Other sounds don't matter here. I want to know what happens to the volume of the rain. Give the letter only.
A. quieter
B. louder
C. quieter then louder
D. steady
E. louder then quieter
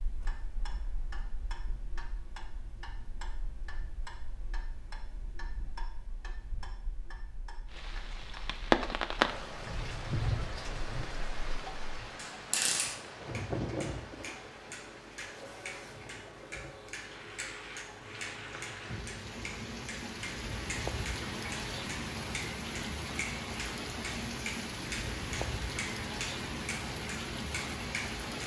C.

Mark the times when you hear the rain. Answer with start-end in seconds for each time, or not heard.
7.7-28.4.